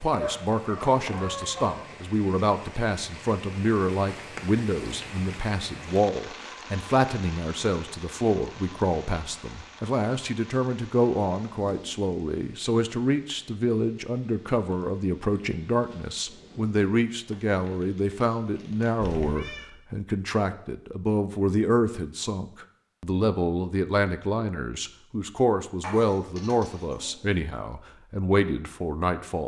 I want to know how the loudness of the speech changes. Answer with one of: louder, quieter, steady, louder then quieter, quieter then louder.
steady.